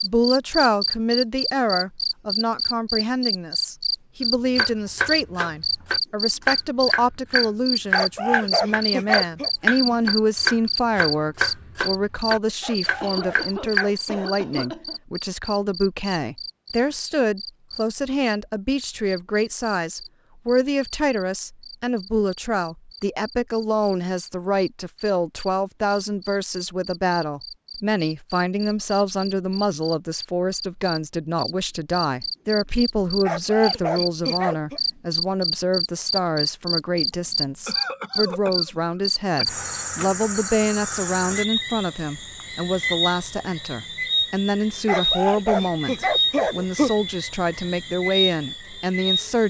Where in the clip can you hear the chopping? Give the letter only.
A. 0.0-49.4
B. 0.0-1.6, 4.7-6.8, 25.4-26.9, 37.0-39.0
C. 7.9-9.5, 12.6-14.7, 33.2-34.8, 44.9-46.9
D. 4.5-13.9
D.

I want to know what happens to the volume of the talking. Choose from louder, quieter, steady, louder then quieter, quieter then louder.
steady.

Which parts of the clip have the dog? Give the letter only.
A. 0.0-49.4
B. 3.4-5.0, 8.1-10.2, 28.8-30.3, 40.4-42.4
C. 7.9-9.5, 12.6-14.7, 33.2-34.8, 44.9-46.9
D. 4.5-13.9
C.